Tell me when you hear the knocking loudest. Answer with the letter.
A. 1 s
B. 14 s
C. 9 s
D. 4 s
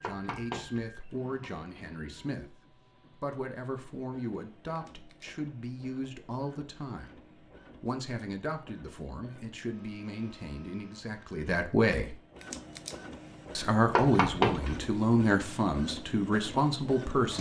B.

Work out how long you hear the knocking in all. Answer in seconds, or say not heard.
2 s.